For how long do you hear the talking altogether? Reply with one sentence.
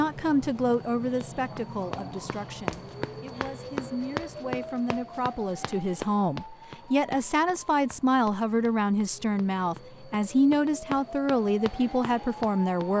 You can hear the talking for 13 seconds altogether.